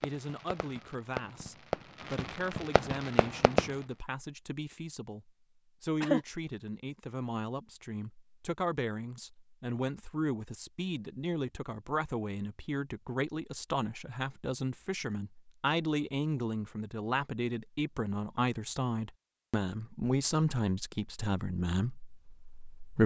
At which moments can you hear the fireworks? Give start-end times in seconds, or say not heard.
0.0-3.7.